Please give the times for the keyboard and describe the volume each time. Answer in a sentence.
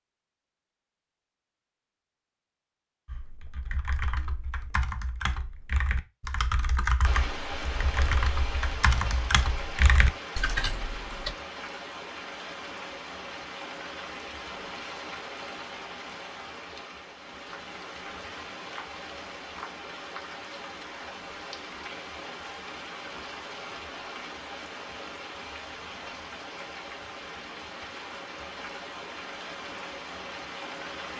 The keyboard can be heard from 3.0 to 11.3 s, getting louder.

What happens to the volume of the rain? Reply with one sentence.
The volume of the rain stays about the same.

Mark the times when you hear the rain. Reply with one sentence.
The rain can be heard from 7.0 to 31.1 s.